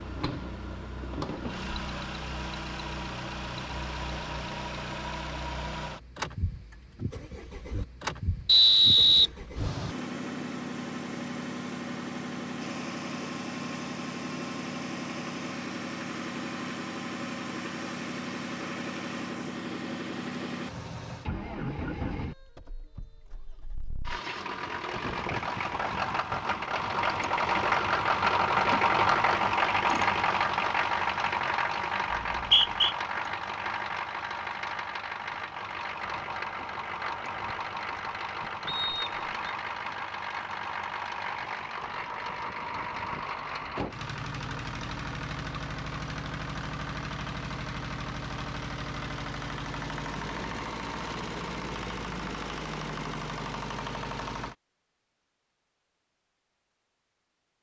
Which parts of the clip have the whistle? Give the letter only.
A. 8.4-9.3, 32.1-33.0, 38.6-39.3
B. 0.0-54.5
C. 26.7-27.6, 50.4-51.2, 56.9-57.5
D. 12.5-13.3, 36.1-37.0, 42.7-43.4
A.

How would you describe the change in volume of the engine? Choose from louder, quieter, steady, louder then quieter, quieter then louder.
louder then quieter.